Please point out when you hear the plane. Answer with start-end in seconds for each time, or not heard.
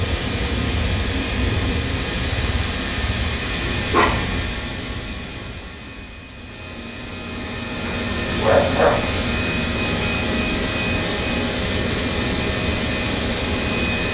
0.0-14.0.